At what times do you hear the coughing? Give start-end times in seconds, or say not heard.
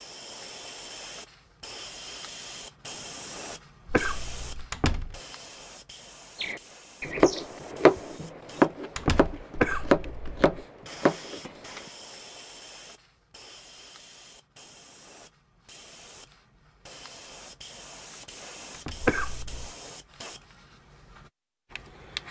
3.9-4.7, 9.6-10.6, 19.0-19.7.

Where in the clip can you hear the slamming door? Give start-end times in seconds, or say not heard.
4.7-5.2, 8.9-9.4, 18.7-19.1.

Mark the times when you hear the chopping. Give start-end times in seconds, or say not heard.
6.4-11.5.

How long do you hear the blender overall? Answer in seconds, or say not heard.
not heard.